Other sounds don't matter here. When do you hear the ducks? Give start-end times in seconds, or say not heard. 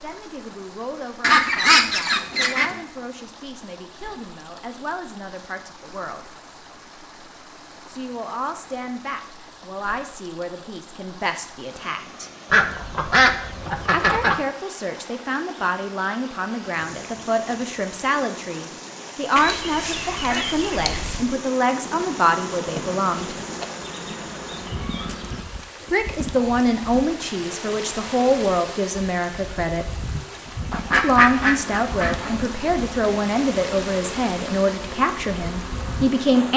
1.2-2.8, 12.5-14.4, 19.4-21.2, 30.7-32.3.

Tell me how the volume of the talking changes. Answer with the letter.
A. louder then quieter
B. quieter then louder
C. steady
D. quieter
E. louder
E.